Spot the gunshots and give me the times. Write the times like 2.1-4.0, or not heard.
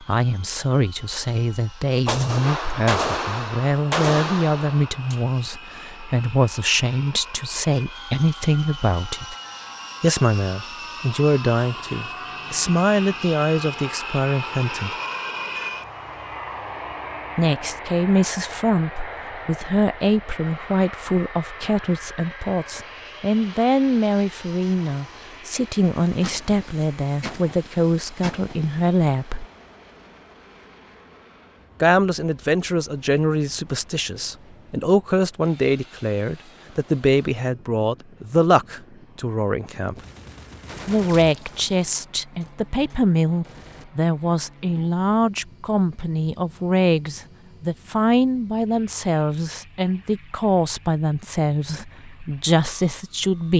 2.0-5.2, 26.2-28.8, 40.0-43.9.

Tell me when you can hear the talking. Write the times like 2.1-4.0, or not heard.
0.0-9.3, 10.0-14.9, 17.4-29.4, 31.8-40.0, 40.9-53.5.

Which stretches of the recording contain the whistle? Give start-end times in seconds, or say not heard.
not heard.